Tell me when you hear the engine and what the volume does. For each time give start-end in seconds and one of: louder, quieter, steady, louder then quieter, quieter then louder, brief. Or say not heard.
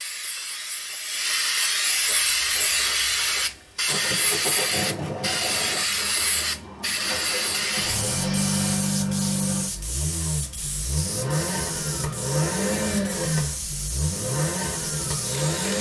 2.1-15.7 louder.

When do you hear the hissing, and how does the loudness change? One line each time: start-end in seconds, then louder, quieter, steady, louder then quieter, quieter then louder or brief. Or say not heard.
0.0-15.7 quieter.